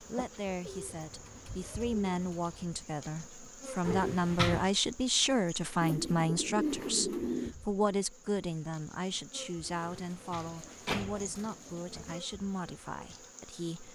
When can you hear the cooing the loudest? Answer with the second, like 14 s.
7 s.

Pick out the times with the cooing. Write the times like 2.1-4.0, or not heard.
0.7-2.6, 5.8-7.5, 9.6-12.2.